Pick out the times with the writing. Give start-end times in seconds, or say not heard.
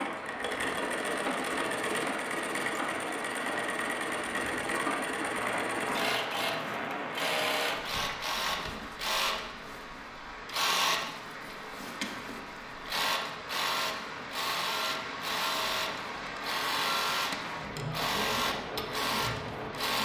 not heard.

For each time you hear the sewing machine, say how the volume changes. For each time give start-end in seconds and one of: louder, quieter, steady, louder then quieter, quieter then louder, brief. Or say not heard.
0.0-20.0 steady.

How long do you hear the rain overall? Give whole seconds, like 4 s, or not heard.
20 s.